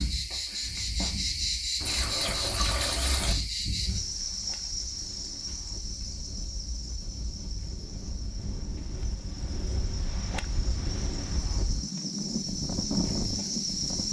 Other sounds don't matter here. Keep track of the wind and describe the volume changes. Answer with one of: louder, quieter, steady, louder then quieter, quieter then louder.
louder.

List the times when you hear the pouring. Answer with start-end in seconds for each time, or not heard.
1.8-3.4.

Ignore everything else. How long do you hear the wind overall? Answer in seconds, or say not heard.
10 s.